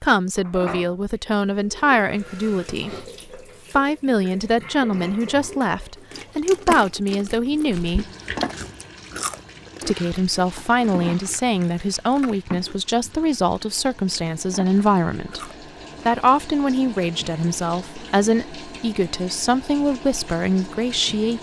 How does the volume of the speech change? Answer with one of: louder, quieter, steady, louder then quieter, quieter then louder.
steady.